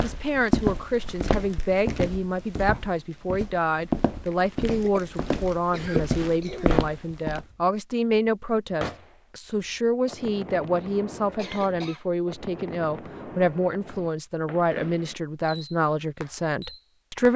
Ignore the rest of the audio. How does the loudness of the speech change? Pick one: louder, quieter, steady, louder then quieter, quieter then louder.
steady.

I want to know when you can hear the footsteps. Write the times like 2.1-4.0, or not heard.
0.0-7.5.